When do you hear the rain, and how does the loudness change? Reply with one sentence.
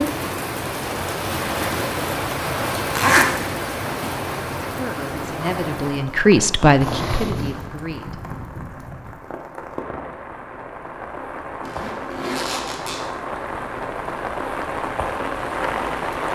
The rain can be heard from 0.0 to 16.3 s, getting quieter then louder.